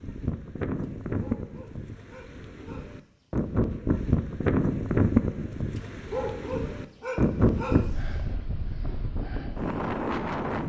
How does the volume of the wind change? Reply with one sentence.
The volume of the wind goes up, then down.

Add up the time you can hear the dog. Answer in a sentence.
You can hear the dog for 5 seconds altogether.